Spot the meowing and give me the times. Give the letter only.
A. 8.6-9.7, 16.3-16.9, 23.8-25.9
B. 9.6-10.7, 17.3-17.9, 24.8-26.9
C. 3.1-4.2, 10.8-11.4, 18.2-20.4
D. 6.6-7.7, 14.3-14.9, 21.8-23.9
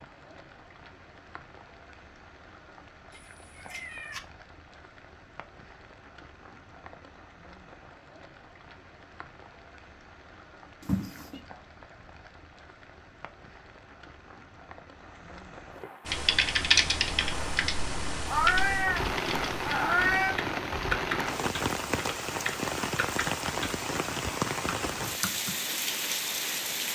C.